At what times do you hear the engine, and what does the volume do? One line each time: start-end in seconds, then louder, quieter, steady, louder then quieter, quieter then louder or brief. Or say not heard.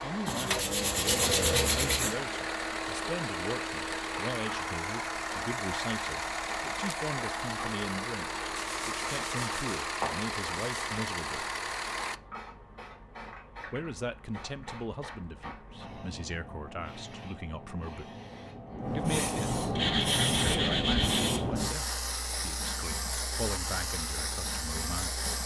0.0-12.2 steady.